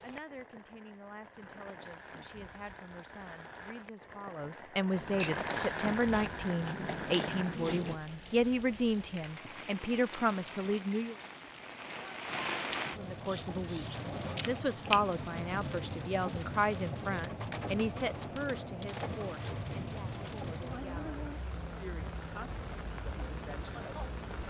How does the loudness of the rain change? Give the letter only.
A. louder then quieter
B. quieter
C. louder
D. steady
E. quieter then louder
C.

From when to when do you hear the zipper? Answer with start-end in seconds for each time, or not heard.
not heard.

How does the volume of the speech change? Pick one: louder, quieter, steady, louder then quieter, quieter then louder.
louder then quieter.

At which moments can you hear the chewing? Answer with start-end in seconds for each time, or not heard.
5.0-8.0, 13.2-15.2.